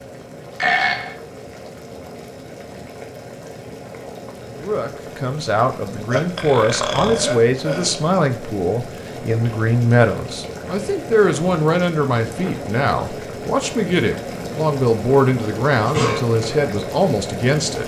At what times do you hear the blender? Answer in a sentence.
The blender can't be heard in this clip.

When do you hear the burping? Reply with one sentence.
You can hear the burping from 0.6 to 1.1 s, from 6.1 to 8.1 s and from 15.8 to 16.2 s.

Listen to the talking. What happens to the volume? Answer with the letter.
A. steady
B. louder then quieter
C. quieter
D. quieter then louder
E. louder
A.